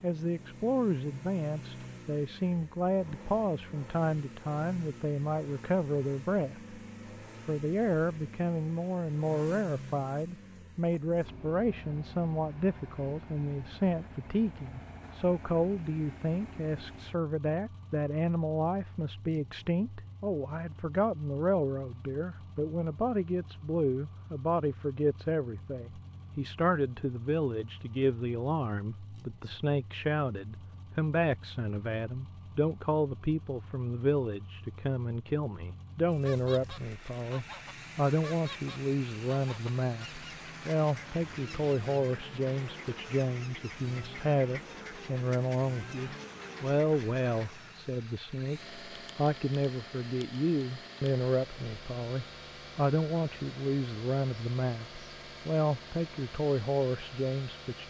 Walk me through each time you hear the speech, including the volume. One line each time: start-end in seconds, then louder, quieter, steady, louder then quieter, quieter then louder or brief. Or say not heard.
0.0-6.8 steady
7.5-57.8 steady.